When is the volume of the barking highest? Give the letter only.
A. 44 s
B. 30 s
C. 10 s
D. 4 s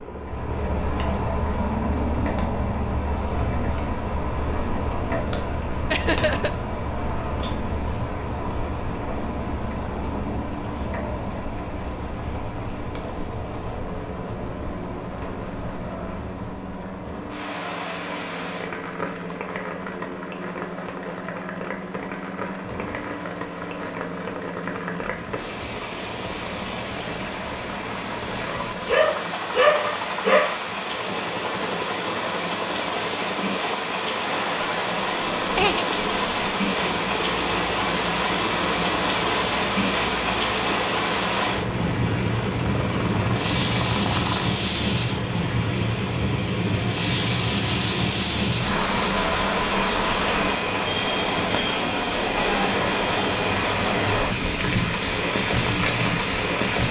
B.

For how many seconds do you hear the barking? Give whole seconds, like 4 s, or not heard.
2 s.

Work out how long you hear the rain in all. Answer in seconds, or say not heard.
57 s.